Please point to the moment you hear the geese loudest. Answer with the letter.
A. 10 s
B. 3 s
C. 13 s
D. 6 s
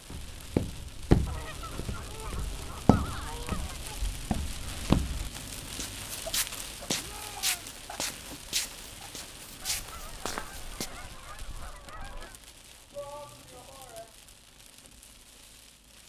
B.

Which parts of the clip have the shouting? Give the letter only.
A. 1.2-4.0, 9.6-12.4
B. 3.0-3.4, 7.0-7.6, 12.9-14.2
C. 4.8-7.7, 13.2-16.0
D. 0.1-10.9
B.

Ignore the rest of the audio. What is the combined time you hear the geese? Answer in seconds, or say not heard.
6 s.